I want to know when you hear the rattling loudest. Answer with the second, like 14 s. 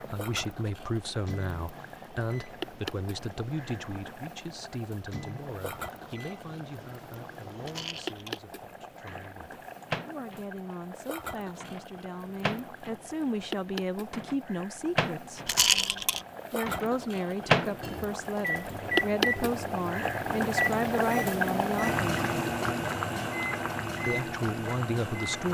16 s.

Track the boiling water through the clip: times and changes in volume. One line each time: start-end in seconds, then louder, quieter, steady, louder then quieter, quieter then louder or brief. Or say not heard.
0.0-25.4 louder.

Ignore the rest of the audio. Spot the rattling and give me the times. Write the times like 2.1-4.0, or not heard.
7.7-8.4, 15.4-16.2.